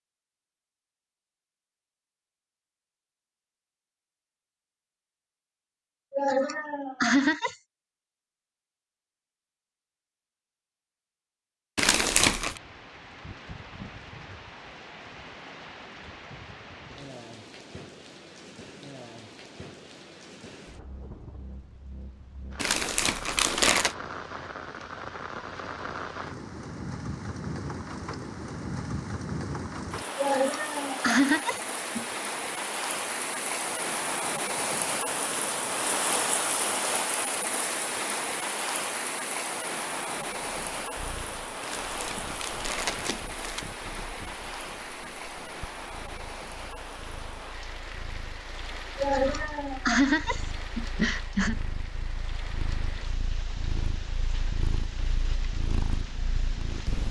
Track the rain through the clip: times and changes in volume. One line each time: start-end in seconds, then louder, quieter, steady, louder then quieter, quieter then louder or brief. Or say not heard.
12.3-57.0 louder then quieter.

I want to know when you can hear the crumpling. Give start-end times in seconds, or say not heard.
11.8-12.6, 22.6-23.9, 41.6-43.6.